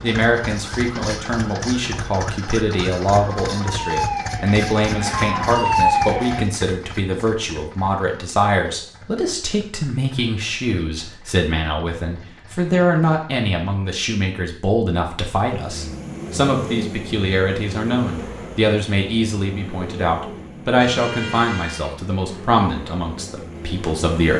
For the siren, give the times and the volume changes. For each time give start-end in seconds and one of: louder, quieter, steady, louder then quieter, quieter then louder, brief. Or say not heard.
0.0-6.5 louder.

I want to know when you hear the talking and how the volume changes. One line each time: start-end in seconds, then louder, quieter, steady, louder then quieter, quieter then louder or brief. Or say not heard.
0.0-24.3 steady.